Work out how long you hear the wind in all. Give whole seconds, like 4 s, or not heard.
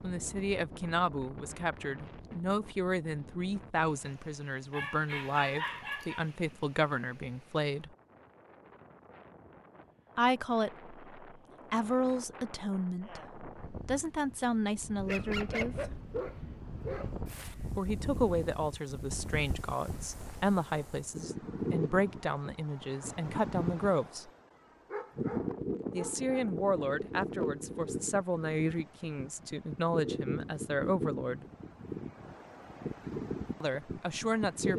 35 s.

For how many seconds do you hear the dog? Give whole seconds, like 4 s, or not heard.
6 s.